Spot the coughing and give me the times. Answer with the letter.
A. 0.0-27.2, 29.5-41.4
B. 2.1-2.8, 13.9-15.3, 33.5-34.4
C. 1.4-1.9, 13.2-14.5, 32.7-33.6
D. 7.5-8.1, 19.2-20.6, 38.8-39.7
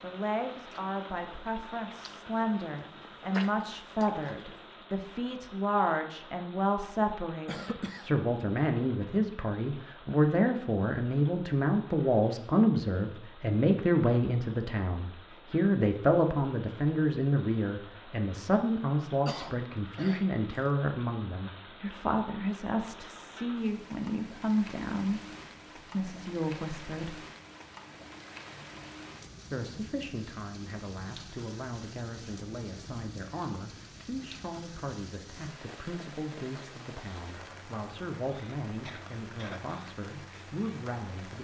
D.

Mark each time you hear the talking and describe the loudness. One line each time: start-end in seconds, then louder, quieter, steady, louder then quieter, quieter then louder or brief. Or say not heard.
0.0-27.2 louder then quieter
29.5-41.4 steady.